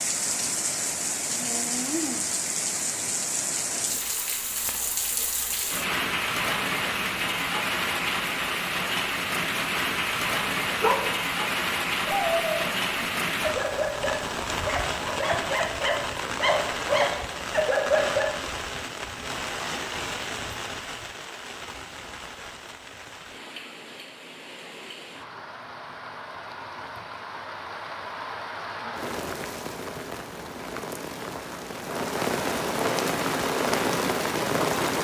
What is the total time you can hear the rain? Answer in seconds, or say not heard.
35 s.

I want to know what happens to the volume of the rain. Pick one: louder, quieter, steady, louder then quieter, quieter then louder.
quieter then louder.